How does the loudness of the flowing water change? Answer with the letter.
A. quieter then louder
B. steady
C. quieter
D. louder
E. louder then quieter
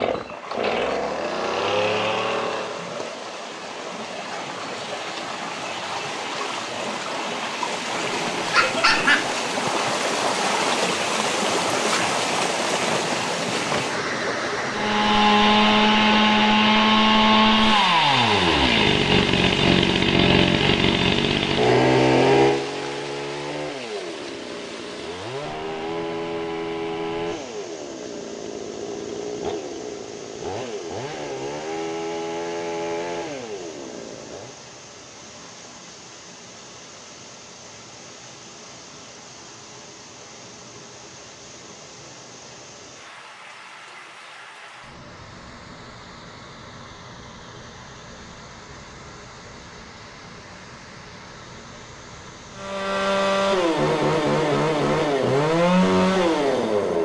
C.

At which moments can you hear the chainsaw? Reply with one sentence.
The chainsaw can be heard from 0.0 to 3.1 s, from 14.7 to 34.5 s and from 52.5 to 57.0 s.